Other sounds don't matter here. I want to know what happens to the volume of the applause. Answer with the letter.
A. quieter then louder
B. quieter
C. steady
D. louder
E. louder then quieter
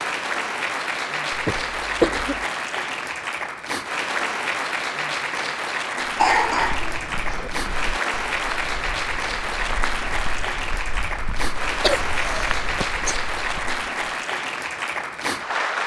C.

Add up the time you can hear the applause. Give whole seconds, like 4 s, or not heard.
16 s.